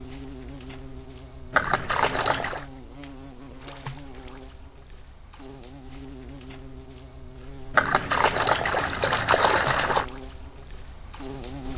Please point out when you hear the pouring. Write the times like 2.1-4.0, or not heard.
1.5-2.6, 7.7-10.1.